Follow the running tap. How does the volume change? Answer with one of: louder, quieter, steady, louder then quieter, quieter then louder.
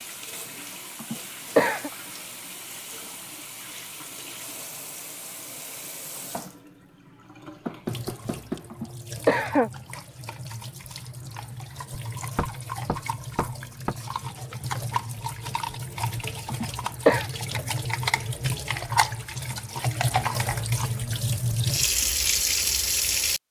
louder.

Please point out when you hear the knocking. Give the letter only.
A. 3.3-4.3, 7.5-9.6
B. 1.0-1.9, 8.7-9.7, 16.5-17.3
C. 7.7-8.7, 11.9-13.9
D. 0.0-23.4
C.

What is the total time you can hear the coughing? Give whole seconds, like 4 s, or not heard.
3 s.